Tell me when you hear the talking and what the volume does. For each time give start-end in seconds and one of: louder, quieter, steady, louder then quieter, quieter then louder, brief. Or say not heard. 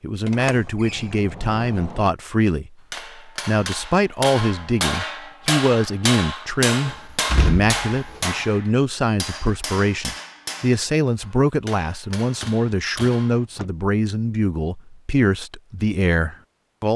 0.0-16.9 steady.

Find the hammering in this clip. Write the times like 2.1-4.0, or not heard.
2.9-13.4.